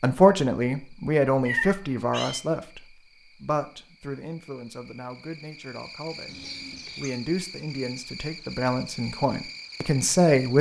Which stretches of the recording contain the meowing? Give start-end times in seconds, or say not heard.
1.4-2.4, 6.2-7.1.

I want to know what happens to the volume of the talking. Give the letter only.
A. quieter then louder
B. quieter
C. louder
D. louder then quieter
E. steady
A.